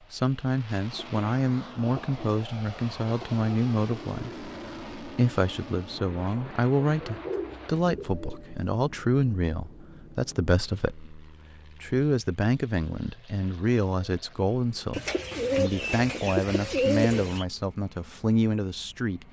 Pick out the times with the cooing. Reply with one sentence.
You can hear the cooing from 0.9 to 3.5 s, from 6.8 to 8.5 s and from 14.9 to 17.4 s.